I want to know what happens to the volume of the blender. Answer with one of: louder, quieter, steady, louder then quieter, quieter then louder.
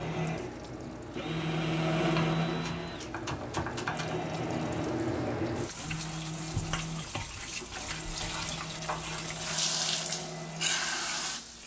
quieter.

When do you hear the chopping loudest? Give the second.
4 s.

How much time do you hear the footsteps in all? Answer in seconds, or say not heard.
not heard.